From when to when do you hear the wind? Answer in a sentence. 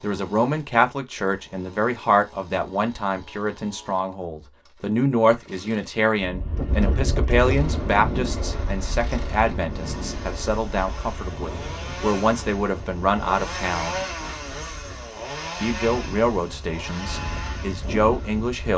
The wind can be heard from 6.2 to 18.7 s.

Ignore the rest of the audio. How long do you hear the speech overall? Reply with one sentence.
You can hear the speech for 17 seconds altogether.